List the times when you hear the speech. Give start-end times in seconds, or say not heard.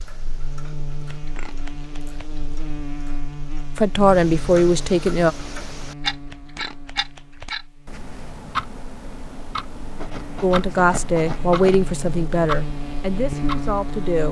3.8-5.3, 10.4-14.2.